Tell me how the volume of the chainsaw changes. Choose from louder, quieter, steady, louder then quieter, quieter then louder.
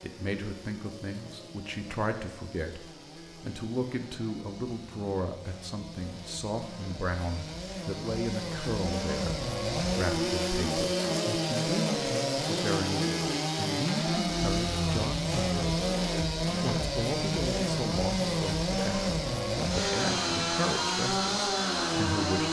louder.